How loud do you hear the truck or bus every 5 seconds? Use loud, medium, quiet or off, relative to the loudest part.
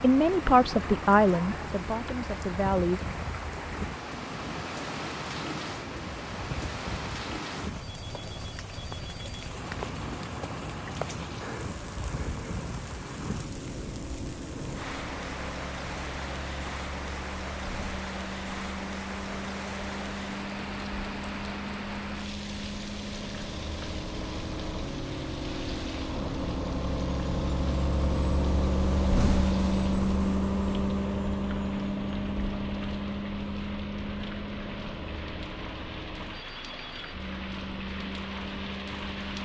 medium, medium, medium, medium, medium, loud, loud, medium.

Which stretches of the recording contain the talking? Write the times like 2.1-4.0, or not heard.
0.0-3.0.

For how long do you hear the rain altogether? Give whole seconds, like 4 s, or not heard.
39 s.